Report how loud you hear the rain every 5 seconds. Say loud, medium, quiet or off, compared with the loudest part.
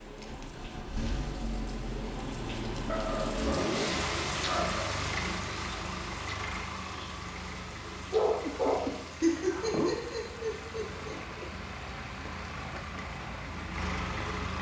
loud, medium, medium.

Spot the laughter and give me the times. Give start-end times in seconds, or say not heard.
9.1-11.4.